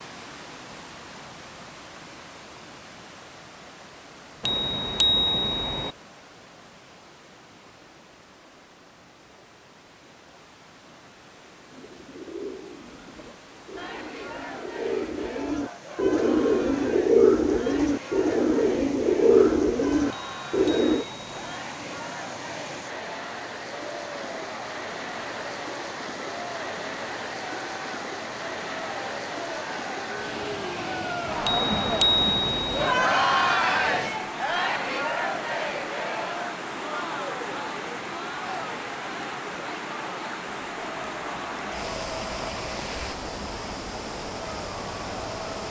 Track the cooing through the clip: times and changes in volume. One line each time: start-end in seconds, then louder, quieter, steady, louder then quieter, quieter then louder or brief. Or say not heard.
11.7-21.1 louder.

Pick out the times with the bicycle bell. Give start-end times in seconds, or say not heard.
4.4-6.0, 20.1-21.4, 31.4-33.0.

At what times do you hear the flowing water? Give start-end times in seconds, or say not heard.
0.0-45.6.